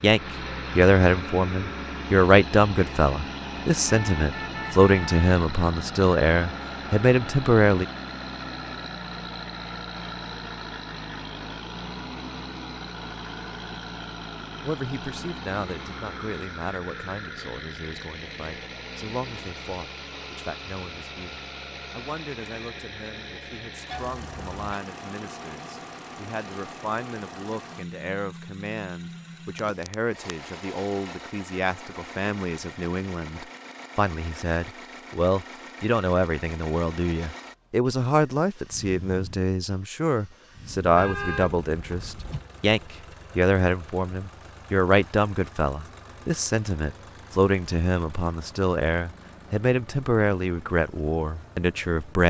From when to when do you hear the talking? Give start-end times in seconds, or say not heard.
0.0-7.8, 14.7-52.2.